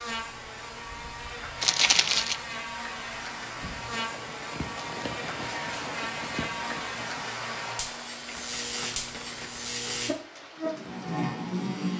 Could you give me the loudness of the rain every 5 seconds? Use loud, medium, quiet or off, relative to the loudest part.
loud, loud, medium.